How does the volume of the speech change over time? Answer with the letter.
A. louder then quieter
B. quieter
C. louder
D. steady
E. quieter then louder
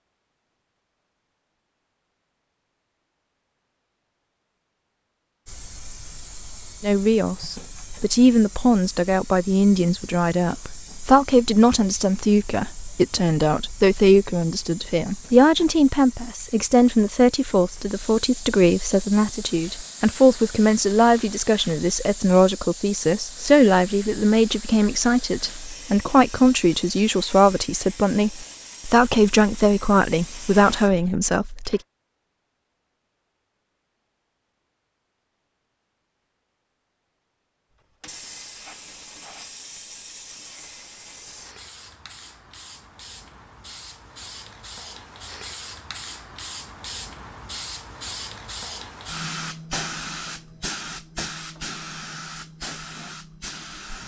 D.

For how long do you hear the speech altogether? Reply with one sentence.
You can hear the speech for 25 seconds altogether.